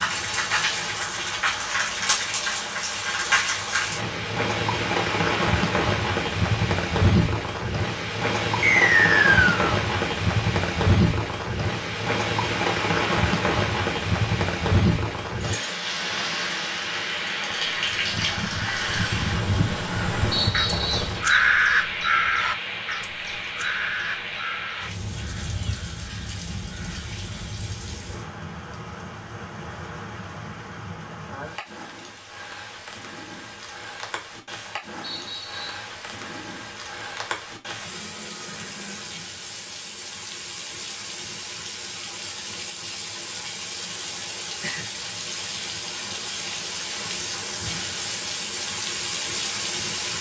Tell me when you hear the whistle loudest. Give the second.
9 s.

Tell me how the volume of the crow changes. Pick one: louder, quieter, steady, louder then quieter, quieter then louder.
louder then quieter.